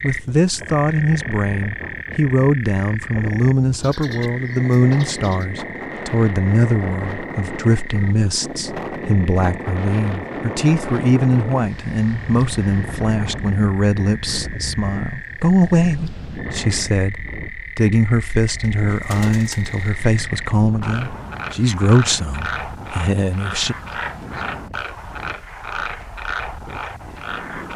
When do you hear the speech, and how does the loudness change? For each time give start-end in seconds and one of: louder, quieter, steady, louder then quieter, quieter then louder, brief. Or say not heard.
0.0-23.8 steady.